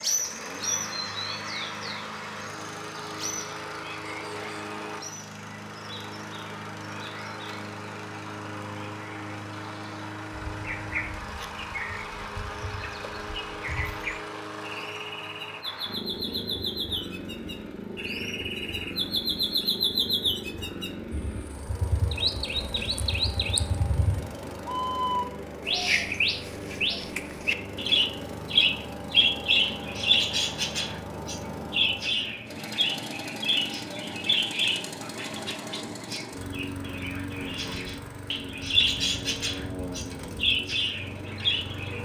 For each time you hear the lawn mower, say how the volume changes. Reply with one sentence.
The lawn mower can be heard from 0.0 to 42.0 s, at a steady volume.